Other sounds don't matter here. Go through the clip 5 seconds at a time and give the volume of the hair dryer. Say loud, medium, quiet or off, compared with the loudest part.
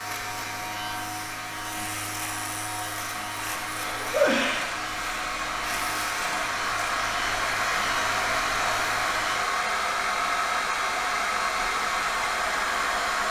medium, loud, loud.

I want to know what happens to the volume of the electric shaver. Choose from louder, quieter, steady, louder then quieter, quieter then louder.
steady.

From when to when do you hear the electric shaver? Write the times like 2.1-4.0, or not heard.
0.0-9.4.